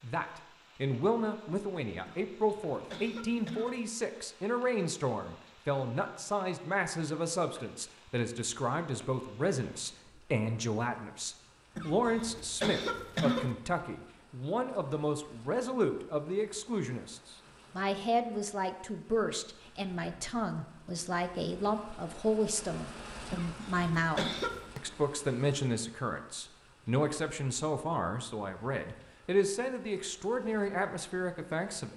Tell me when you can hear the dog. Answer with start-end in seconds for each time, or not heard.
not heard.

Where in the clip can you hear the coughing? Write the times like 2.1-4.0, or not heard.
2.0-3.8, 11.8-13.5, 23.3-24.6.